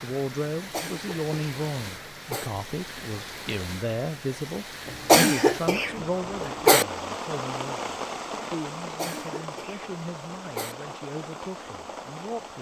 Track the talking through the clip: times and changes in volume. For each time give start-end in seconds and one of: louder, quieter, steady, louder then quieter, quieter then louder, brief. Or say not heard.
0.0-12.5 quieter.